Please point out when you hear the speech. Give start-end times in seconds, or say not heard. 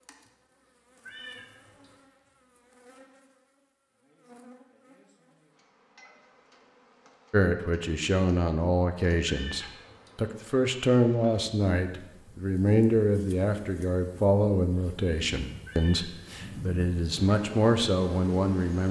7.3-18.8.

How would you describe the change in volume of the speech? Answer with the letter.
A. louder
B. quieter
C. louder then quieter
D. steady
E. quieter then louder
D.